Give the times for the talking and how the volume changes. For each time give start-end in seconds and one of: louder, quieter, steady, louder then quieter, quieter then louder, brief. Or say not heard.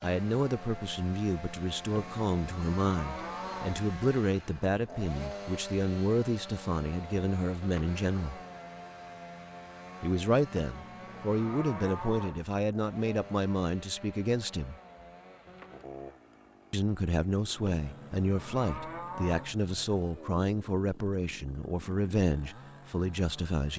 0.0-8.4 steady
10.0-14.8 steady
16.7-23.7 steady.